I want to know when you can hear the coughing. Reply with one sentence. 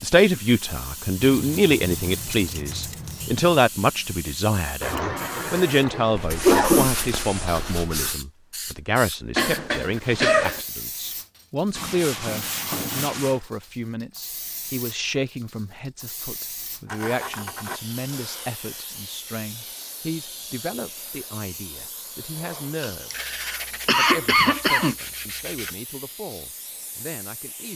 You can hear the coughing from 4.8 to 6.9 s, from 9.3 to 10.6 s and from 22.8 to 24.9 s.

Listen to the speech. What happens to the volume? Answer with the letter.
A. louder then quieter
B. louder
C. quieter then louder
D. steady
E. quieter
E.